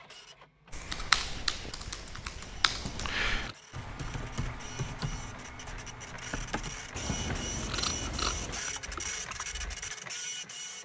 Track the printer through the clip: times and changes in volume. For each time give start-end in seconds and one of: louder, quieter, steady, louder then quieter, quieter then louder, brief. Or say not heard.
0.0-10.8 louder.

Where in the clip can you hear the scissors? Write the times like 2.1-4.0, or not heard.
2.7-3.5, 6.9-8.7.